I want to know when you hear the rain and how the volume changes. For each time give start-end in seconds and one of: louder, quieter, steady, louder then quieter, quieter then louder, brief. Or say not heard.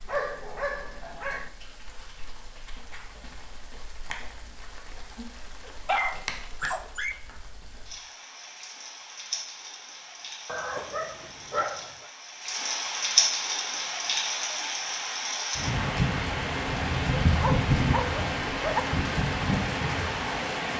0.0-20.7 louder.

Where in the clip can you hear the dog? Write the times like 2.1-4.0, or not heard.
0.1-1.5, 5.7-7.2, 10.4-12.1, 17.3-18.8.